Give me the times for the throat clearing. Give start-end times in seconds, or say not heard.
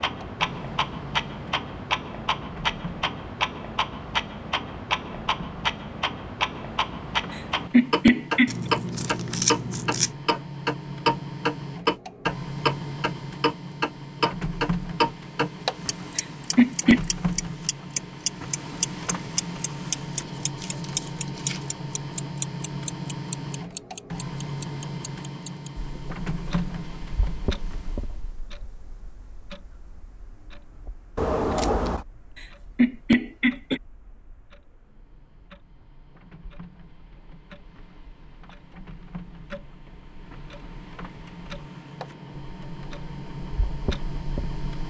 7.7-8.6, 16.1-17.0, 32.8-33.8.